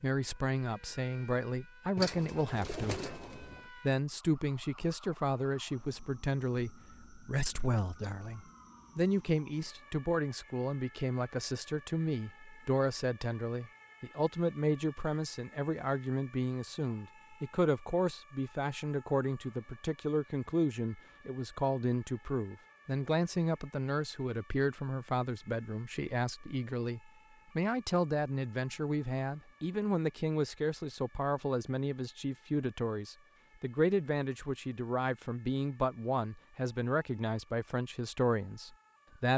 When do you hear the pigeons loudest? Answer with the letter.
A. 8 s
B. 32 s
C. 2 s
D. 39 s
C.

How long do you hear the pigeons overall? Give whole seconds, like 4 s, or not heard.
2 s.